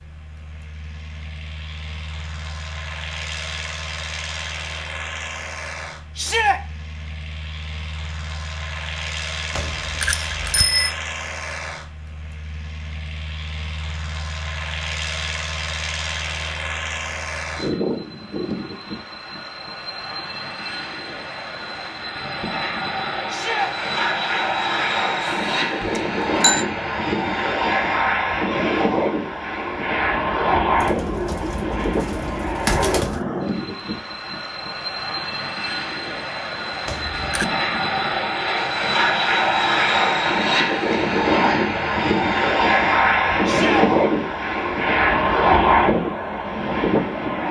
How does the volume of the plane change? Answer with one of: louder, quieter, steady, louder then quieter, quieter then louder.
louder.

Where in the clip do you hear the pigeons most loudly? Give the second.
33 s.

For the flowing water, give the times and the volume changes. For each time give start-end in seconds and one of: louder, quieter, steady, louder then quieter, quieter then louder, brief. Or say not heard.
not heard.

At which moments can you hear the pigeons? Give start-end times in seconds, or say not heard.
30.8-33.2.